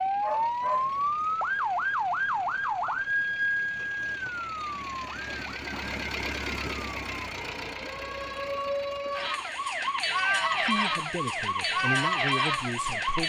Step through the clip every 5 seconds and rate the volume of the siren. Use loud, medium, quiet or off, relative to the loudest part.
loud, medium, loud.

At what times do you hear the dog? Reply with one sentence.
The dog can be heard from 0.1 to 1.1 s.